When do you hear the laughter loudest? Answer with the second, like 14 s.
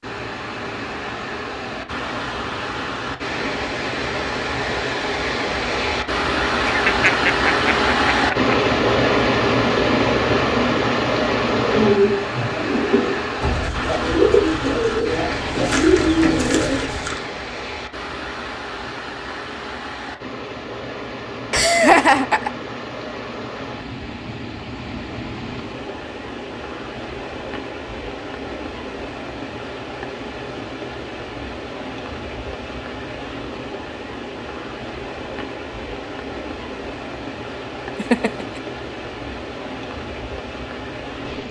22 s.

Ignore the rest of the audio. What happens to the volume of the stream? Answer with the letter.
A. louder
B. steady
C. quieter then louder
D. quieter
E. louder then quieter
D.